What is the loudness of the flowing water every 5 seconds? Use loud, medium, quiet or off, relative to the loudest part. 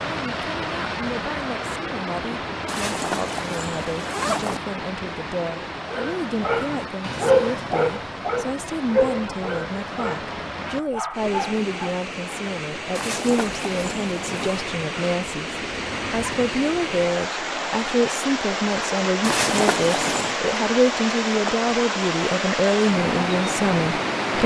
medium, medium, medium, loud, loud.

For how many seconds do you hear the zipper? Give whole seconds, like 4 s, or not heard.
5 s.